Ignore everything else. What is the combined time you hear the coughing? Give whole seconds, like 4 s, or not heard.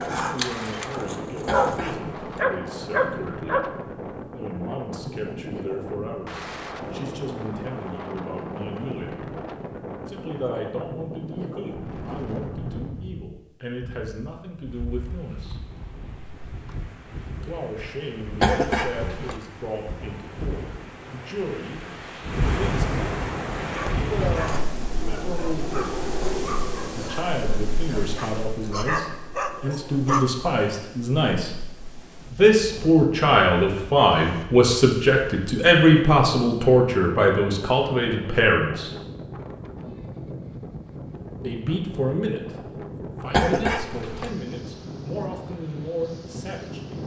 3 s.